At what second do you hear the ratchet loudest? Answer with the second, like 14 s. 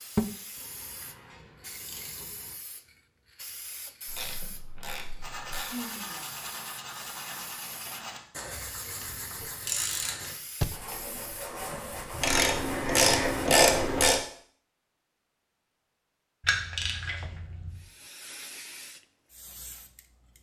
14 s.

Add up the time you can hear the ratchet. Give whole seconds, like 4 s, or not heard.
9 s.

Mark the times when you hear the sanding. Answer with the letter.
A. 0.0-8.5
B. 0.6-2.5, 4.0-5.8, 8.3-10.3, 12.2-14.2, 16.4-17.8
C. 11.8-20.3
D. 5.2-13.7
D.